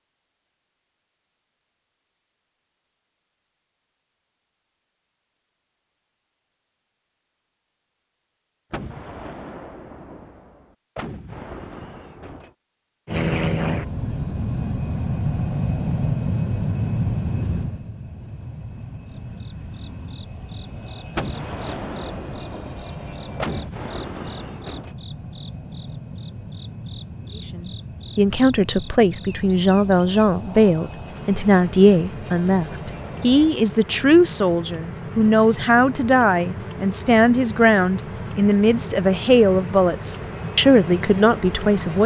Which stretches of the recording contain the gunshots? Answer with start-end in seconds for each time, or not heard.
8.7-12.5, 21.1-24.9.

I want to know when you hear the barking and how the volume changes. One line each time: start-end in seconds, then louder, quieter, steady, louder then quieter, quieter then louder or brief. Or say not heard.
not heard.